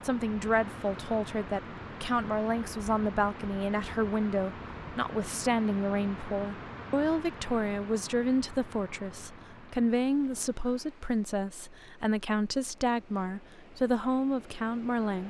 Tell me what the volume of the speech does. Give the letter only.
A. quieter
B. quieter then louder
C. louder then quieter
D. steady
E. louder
D.